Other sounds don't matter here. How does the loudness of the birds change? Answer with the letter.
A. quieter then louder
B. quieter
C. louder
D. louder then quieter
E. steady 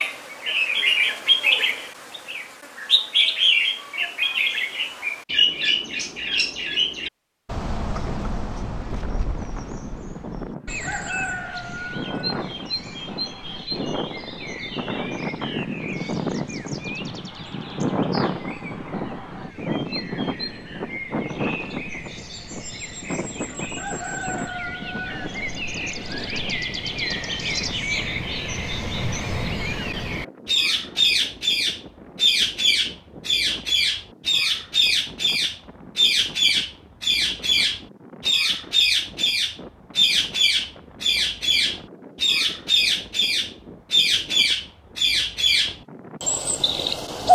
A.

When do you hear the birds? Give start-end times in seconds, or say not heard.
0.0-47.3.